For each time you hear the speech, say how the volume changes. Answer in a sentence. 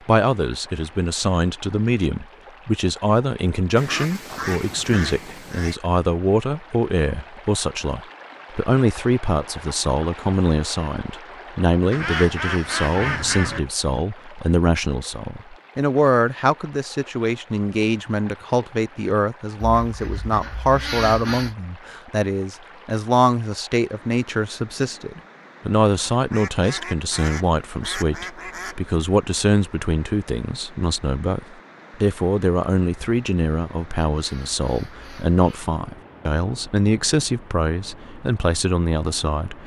You can hear the speech from 0.1 to 39.6 s, at a steady volume.